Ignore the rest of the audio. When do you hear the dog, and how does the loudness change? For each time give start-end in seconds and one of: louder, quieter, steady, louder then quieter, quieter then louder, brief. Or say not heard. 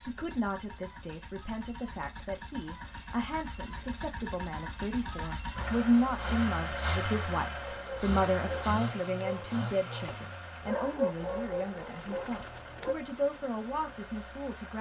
7.6-12.9 louder then quieter.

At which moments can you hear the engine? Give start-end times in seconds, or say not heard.
0.0-14.7.